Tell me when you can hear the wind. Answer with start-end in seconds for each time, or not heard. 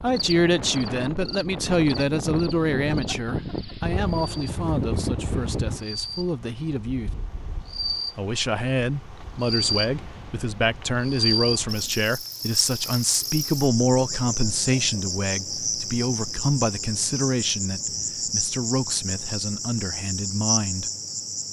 0.0-12.0.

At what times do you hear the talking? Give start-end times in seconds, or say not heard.
0.0-7.1, 8.2-20.9.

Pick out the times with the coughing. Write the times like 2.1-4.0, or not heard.
not heard.